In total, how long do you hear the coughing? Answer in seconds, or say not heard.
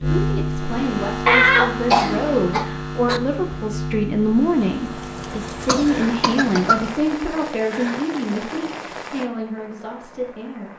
3 s.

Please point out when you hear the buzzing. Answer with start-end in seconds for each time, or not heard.
0.0-7.2.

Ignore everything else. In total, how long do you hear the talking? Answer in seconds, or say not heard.
11 s.